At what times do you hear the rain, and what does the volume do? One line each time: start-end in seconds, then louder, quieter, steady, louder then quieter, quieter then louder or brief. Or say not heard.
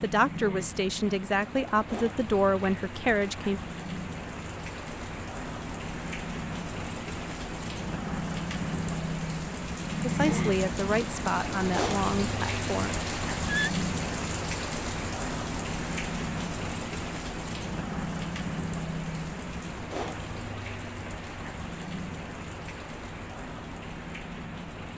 0.0-24.9 louder then quieter.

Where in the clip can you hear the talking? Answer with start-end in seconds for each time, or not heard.
0.0-3.6, 10.0-12.9.